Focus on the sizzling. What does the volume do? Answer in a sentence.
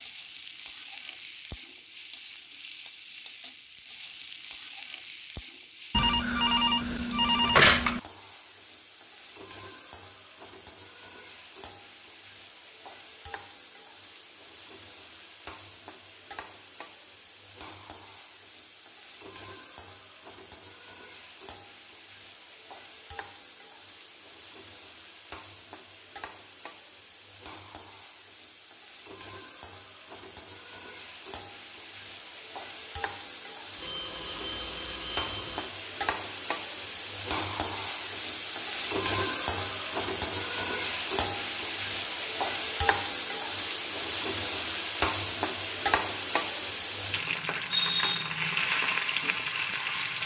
The loudness of the sizzling goes up.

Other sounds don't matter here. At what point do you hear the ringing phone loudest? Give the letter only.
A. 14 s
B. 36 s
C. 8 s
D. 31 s
C.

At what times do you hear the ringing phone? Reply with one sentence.
The ringing phone can be heard from 5.9 to 8.0 s and from 33.8 to 35.8 s.